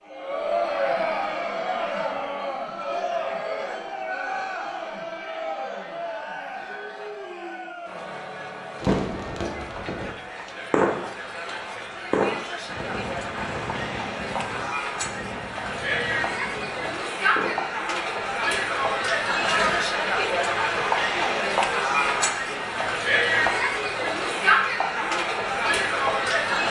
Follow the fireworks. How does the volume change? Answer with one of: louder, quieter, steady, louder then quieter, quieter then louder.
louder then quieter.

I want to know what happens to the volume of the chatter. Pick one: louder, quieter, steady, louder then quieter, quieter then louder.
quieter then louder.